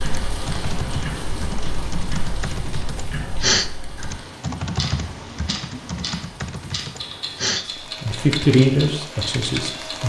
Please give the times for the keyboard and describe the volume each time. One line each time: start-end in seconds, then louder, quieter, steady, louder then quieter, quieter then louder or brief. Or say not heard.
0.2-9.8 louder then quieter.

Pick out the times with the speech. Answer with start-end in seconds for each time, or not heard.
7.7-10.0.